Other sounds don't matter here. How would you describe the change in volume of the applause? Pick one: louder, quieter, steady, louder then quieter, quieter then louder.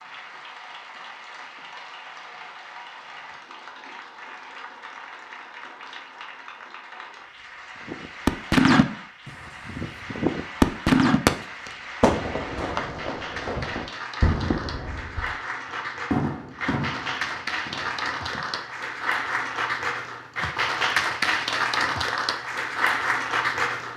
louder.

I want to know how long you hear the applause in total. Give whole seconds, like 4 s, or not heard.
24 s.